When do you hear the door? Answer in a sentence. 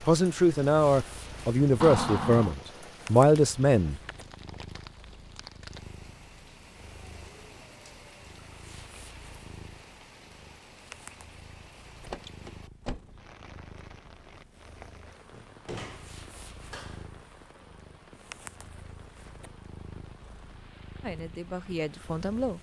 The door can be heard from 1.8 to 2.5 s, from 12.0 to 13.2 s and from 15.3 to 17.1 s.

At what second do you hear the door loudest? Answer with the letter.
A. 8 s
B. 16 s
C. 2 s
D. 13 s
C.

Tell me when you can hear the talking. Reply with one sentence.
You can hear the talking from 0.1 to 4.0 s and from 21.0 to 22.5 s.